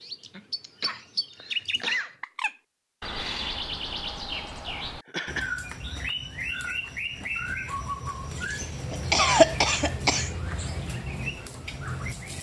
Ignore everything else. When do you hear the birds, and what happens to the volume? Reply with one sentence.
The birds can be heard from 0.0 to 12.3 s, at a steady volume.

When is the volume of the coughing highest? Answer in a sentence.
The volume of the coughing peaks at 9 seconds.